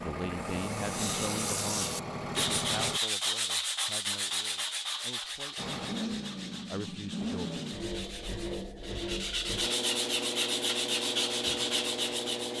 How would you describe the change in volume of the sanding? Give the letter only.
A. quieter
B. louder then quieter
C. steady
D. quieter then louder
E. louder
D.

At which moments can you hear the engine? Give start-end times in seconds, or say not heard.
0.0-3.0, 5.5-12.5.